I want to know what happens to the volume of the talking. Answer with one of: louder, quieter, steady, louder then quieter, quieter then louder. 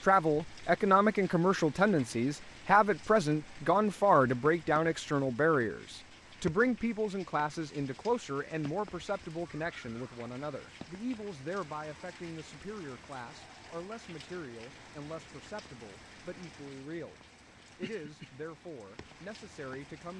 quieter.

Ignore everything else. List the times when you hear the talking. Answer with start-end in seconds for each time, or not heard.
0.0-20.1.